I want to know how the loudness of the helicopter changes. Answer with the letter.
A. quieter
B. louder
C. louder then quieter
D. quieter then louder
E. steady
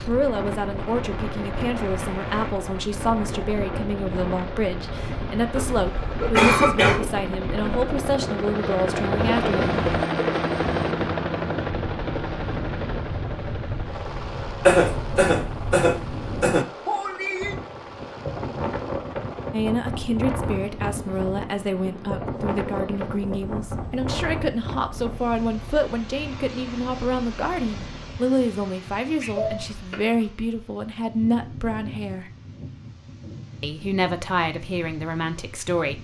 C.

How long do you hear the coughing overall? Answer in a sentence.
The coughing can be heard for 4 seconds in total.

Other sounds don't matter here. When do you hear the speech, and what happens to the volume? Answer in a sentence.
You can hear the speech from 0.1 to 9.8 s, at a steady volume; from 19.5 to 32.3 s, at a steady volume; and briefly from 33.6 to 35.9 s.